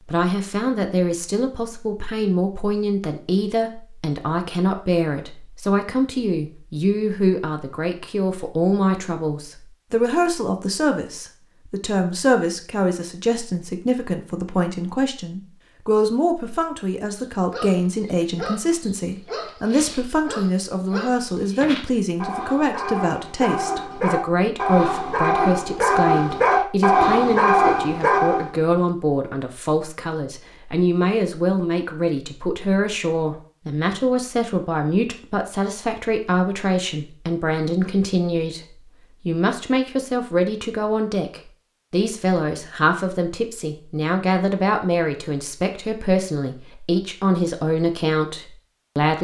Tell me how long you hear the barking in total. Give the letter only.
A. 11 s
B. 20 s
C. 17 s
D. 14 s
A.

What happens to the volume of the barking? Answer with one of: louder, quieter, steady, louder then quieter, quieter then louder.
louder.